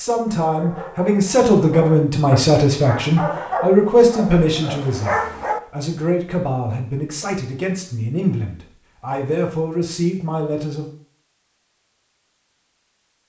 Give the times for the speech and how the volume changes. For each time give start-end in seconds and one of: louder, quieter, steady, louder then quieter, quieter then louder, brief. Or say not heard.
0.0-10.9 quieter.